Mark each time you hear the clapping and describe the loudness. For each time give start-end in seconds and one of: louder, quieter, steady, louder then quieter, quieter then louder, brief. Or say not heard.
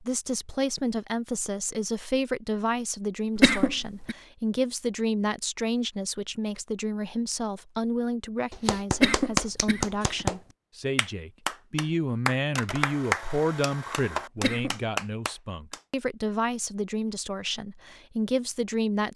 8.5-15.8 steady.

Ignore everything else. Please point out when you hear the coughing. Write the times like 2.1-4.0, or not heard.
3.4-4.2, 8.9-10.2, 14.3-14.8.